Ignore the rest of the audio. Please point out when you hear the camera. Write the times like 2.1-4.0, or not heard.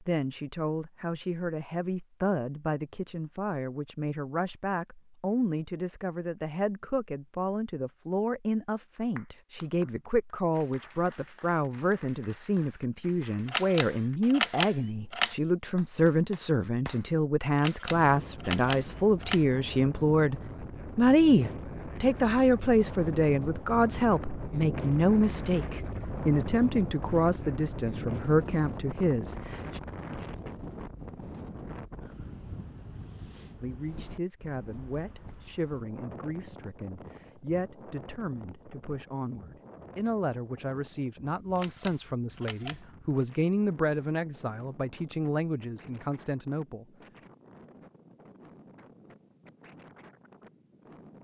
13.4-15.3, 17.6-19.4, 41.5-42.8.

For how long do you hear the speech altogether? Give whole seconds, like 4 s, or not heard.
43 s.